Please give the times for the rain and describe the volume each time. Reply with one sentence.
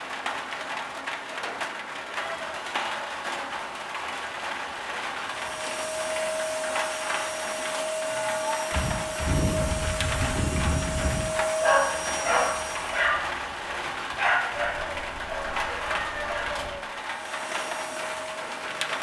The rain can be heard from 0.0 to 18.9 s, at a steady volume.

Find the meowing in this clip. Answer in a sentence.
You can hear the meowing from 2.1 to 2.6 s, from 8.0 to 8.7 s and from 14.5 to 16.9 s.